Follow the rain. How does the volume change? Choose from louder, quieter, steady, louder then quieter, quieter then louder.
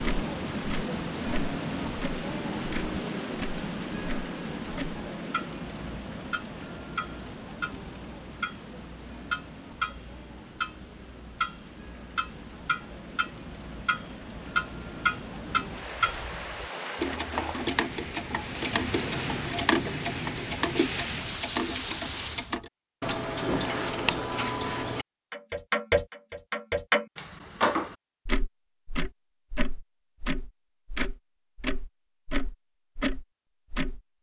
quieter then louder.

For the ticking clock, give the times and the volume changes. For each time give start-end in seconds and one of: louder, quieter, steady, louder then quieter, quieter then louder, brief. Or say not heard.
0.0-34.0 louder.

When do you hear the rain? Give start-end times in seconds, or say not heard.
0.0-22.6.